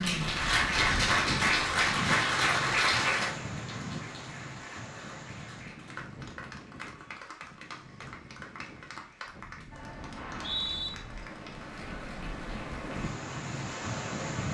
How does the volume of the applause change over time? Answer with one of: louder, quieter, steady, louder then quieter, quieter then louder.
quieter.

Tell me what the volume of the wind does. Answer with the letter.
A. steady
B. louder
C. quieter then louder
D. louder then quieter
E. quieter
C.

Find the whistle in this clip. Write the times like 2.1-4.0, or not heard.
10.2-10.9.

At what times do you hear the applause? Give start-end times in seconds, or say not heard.
0.0-14.4.